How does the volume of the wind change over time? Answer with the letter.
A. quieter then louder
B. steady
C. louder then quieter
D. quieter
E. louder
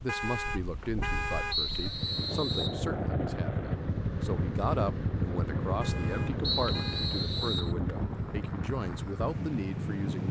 E.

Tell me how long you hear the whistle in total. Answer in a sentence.
You can hear the whistle for 3 seconds altogether.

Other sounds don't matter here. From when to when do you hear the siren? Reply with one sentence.
You can't hear the siren here.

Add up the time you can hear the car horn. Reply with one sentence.
You can hear the car horn for 3 seconds altogether.